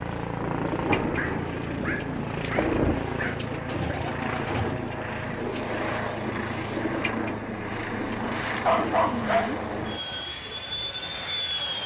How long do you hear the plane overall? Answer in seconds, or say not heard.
12 s.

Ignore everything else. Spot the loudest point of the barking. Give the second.
9 s.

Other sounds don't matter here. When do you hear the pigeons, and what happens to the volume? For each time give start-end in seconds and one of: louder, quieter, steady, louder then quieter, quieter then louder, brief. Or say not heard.
0.6-9.1 steady.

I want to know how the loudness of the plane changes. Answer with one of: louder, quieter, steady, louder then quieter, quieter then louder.
steady.